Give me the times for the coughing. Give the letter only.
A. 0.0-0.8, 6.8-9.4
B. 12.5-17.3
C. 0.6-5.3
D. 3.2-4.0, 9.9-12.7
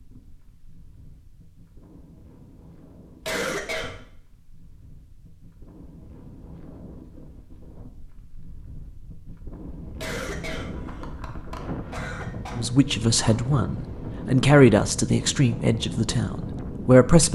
D.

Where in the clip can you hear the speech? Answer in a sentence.
You can hear the speech from 12.5 to 17.3 s.